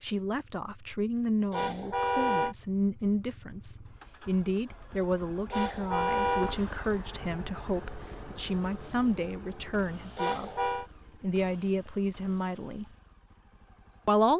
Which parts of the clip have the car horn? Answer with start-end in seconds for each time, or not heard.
1.5-2.5, 5.5-6.5, 10.2-10.8.